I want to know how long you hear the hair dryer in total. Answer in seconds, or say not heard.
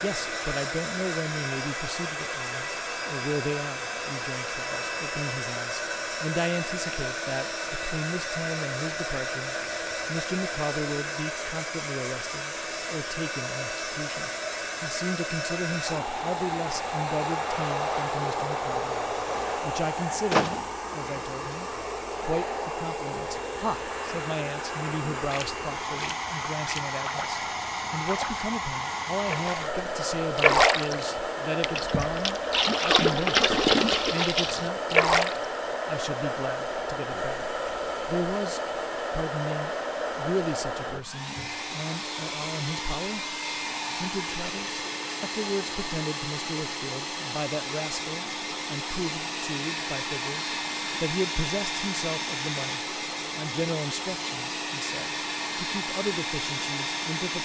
57 s.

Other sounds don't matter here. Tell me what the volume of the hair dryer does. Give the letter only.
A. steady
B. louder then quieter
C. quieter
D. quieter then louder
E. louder
A.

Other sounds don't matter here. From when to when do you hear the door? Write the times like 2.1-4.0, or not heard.
20.3-21.1.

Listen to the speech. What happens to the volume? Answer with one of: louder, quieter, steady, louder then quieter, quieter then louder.
steady.